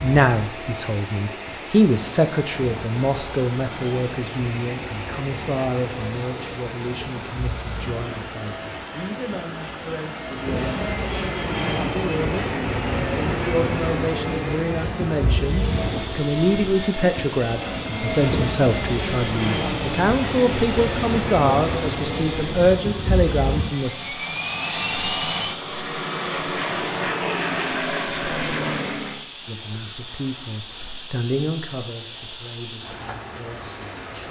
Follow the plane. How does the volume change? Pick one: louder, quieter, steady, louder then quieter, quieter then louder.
louder.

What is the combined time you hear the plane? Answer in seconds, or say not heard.
29 s.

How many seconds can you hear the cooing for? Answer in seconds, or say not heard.
not heard.